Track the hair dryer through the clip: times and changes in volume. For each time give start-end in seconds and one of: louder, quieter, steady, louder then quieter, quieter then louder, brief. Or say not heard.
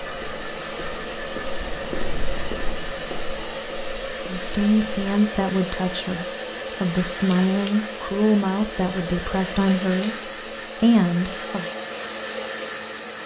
0.0-13.2 steady.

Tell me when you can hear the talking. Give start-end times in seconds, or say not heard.
4.2-11.7.